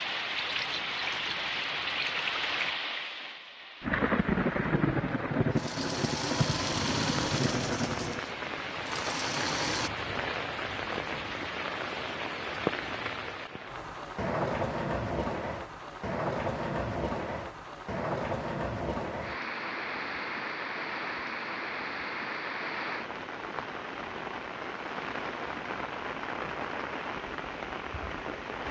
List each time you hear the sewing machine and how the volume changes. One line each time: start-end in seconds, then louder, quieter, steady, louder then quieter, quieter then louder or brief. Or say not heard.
5.5-9.9 quieter then louder.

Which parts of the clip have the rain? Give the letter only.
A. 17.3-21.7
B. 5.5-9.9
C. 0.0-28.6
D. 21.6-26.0
C.